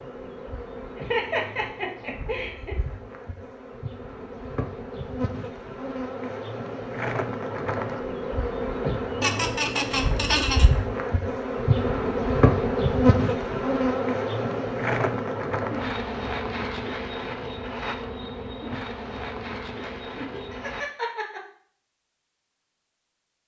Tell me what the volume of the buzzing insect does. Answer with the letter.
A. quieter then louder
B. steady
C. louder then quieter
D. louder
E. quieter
C.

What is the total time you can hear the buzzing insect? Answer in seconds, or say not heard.
21 s.